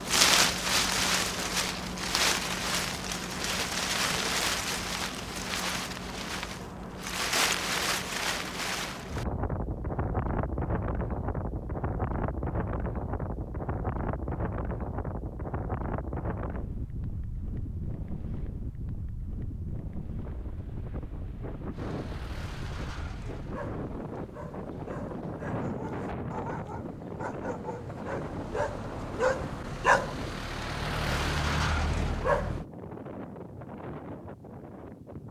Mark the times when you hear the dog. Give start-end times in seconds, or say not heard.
21.7-32.6.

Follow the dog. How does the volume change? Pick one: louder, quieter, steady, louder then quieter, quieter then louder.
louder.